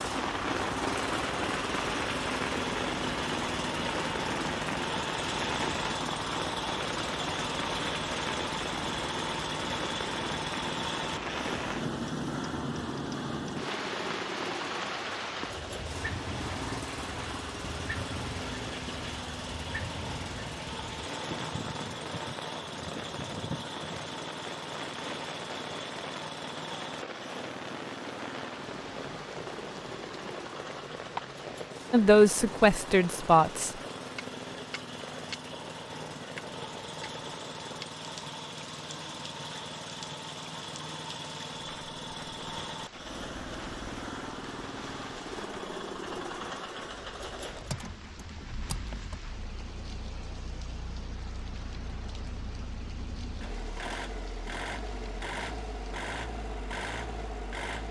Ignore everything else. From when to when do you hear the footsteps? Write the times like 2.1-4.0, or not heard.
not heard.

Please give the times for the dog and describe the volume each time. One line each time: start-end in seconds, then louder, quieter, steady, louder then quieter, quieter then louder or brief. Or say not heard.
not heard.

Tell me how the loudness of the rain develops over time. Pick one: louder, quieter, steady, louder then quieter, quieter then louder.
quieter.